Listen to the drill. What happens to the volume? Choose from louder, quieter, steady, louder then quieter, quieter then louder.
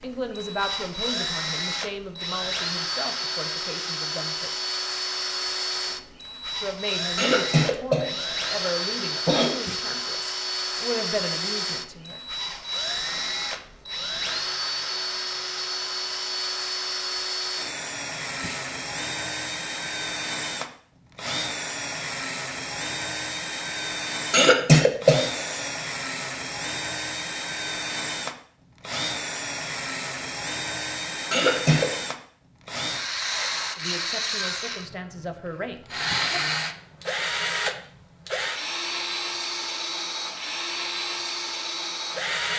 steady.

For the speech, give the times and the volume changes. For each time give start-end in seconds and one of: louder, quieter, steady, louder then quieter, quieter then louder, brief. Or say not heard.
0.0-4.5 quieter
6.5-12.2 quieter then louder
33.8-36.5 brief.